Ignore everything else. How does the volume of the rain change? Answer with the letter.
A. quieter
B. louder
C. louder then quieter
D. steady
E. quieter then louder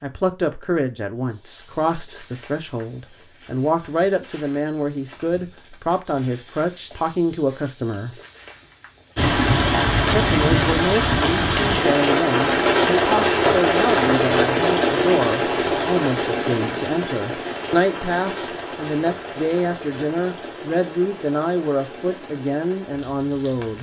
A.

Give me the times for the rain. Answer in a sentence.
The rain can be heard from 9.2 to 23.7 s.